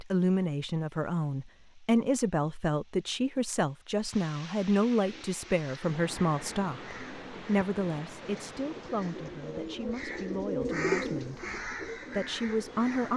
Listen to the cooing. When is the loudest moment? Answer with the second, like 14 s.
11 s.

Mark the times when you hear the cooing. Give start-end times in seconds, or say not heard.
5.0-13.1.